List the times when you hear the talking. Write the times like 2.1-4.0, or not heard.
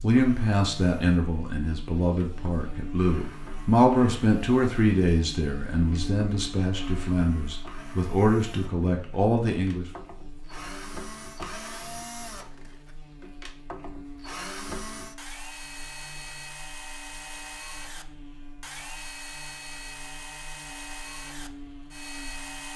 0.0-9.8.